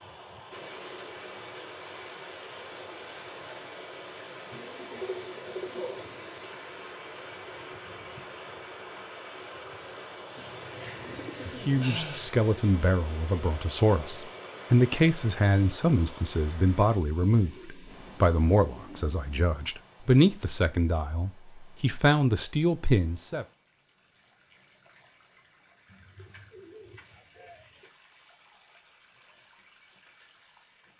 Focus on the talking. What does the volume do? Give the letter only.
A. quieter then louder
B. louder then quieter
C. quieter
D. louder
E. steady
E.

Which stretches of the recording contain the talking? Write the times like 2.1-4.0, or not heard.
11.4-23.4.